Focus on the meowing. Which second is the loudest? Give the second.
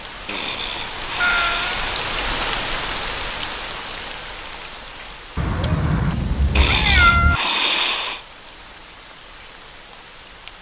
7 s.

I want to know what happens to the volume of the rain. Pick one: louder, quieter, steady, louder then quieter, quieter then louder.
quieter.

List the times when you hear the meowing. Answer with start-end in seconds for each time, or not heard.
1.1-1.8, 5.3-7.4.